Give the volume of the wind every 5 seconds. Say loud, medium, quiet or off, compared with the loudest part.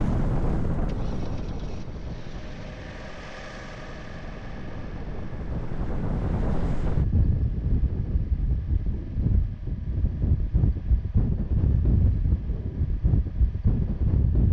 medium, loud, loud.